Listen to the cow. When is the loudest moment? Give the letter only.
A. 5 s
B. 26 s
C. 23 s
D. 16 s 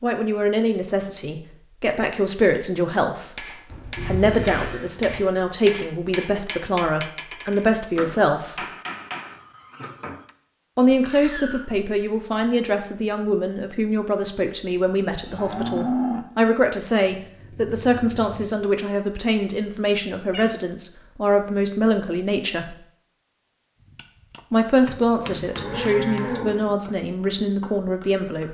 D.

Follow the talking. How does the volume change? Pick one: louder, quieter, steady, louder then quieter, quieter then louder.
steady.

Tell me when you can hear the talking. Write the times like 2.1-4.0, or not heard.
0.0-3.5, 4.0-8.7, 10.8-22.8, 24.5-28.4.